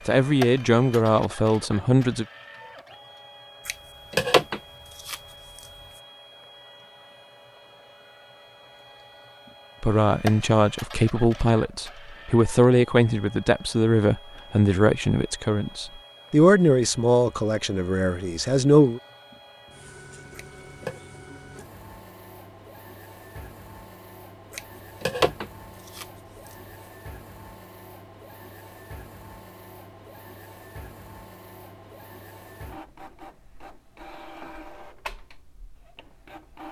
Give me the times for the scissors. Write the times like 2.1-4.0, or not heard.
3.6-5.2, 20.3-21.0, 24.5-26.1.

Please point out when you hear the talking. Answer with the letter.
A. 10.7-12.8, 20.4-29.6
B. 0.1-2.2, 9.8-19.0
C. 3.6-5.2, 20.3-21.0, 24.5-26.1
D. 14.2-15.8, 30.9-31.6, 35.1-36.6
B.